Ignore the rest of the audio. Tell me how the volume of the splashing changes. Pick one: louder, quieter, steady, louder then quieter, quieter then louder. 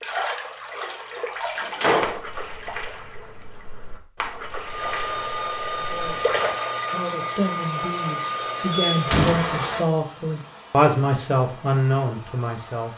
quieter then louder.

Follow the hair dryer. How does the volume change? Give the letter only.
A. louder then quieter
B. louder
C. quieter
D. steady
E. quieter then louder
C.